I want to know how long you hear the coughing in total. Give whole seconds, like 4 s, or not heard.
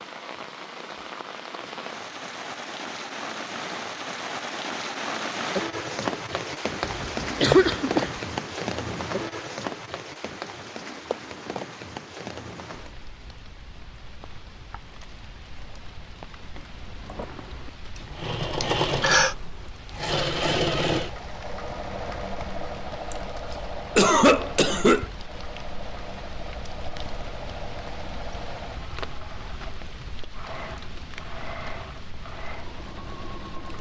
4 s.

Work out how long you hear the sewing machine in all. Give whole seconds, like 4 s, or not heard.
17 s.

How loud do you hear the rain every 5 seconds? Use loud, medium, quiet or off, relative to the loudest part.
medium, loud, medium, quiet, quiet, quiet, quiet.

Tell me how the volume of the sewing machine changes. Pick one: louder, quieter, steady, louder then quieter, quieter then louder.
quieter.